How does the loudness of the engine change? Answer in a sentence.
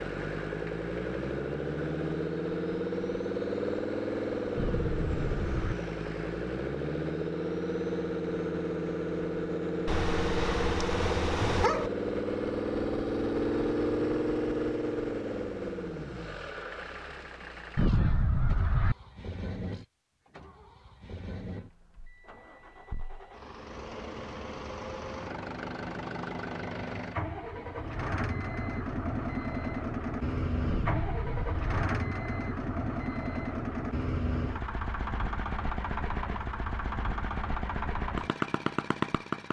The volume of the engine goes down, then up.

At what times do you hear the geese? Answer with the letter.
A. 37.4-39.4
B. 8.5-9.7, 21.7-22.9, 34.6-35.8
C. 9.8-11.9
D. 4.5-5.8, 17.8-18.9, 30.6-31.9
D.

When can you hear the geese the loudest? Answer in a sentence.
The volume of the geese peaks at 18 seconds.